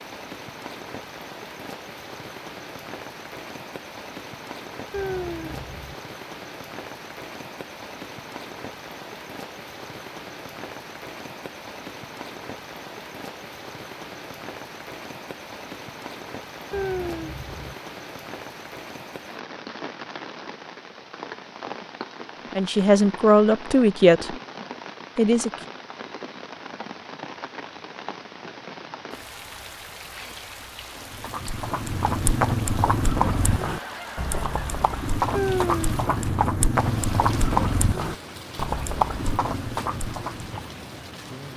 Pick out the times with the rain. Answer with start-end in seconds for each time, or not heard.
0.0-41.5.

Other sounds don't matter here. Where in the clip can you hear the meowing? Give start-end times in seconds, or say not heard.
4.9-6.0, 16.7-17.8, 35.3-36.1.